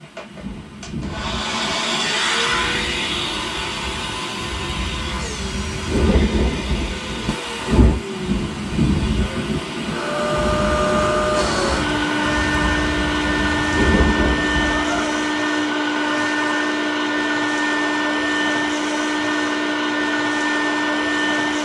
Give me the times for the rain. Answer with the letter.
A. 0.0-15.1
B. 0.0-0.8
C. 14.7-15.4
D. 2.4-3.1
A.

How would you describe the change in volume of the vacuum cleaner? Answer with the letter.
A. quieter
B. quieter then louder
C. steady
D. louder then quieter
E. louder
B.